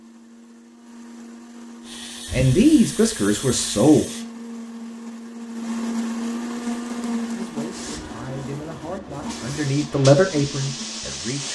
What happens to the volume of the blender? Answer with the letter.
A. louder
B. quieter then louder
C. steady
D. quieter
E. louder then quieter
E.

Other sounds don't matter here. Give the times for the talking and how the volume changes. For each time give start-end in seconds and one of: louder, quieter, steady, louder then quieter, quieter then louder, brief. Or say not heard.
2.3-4.0 brief
7.3-11.5 louder then quieter.